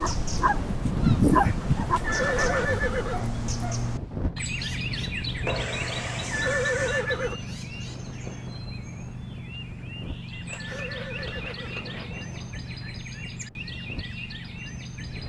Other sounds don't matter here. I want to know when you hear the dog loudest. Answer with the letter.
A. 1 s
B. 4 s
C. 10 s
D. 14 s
A.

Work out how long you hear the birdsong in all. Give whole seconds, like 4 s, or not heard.
15 s.